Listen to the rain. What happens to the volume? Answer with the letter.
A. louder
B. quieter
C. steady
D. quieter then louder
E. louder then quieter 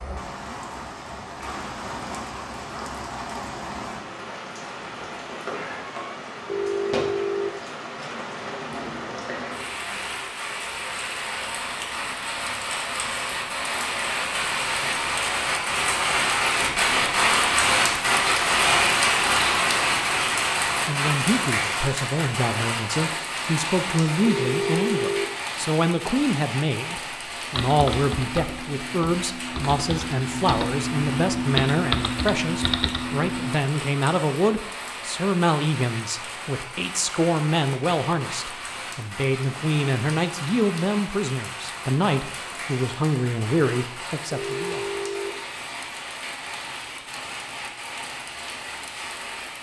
E.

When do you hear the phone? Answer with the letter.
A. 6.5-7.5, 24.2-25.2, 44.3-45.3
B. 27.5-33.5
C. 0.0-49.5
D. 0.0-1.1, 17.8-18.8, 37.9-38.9
A.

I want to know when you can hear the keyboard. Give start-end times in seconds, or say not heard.
27.5-33.5.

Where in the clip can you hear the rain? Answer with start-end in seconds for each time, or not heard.
0.0-49.5.